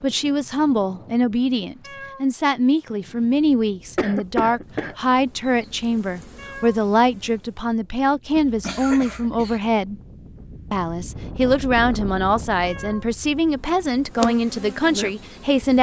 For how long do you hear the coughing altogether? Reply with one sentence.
You can hear the coughing for 2 seconds altogether.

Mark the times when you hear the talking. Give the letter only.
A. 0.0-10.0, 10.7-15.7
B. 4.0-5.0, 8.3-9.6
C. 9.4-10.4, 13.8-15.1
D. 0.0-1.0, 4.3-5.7
A.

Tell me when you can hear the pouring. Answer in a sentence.
You can't hear the pouring here.